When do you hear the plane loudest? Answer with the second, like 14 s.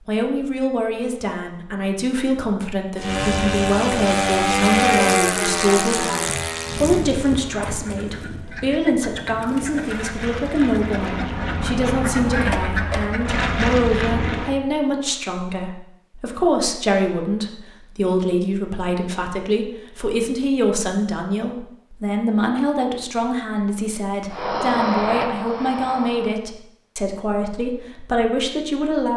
5 s.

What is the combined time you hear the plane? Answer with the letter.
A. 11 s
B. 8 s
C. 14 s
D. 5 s
C.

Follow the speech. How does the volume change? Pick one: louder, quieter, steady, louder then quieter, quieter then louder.
steady.